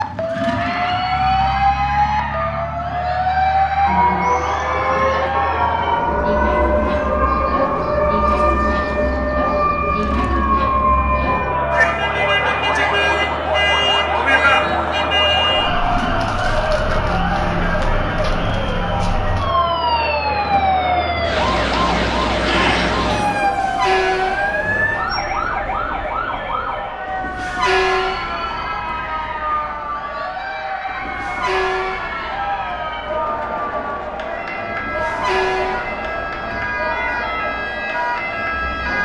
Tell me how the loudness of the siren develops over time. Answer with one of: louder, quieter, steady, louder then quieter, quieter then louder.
quieter.